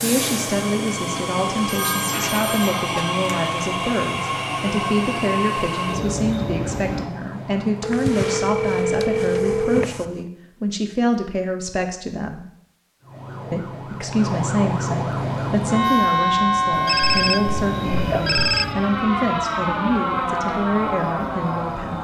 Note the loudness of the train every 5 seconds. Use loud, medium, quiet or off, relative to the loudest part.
loud, loud, off, medium, quiet.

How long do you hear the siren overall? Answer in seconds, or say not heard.
19 s.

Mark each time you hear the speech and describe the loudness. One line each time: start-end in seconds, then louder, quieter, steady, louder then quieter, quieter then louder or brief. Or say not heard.
0.0-12.4 steady
13.5-21.9 steady.